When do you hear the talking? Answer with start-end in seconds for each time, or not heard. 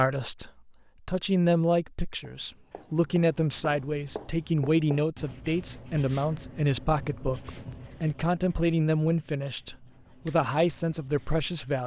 0.0-11.8.